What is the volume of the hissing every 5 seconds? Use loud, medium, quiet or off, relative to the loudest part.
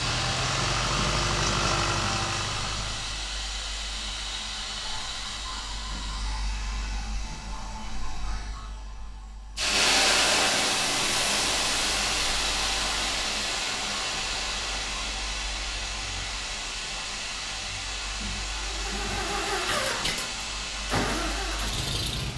medium, medium, loud, medium, medium.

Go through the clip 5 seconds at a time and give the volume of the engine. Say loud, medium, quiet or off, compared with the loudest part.
loud, off, off, loud, loud.